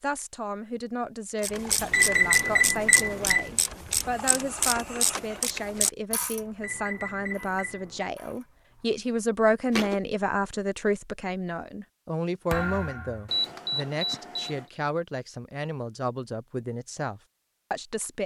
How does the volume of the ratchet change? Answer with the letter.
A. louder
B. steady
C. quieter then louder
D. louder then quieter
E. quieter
E.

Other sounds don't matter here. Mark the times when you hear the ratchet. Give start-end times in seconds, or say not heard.
1.4-8.4.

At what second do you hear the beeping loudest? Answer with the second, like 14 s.
2 s.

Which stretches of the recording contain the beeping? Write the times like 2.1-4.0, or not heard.
1.9-3.5, 6.6-8.1, 13.2-14.7.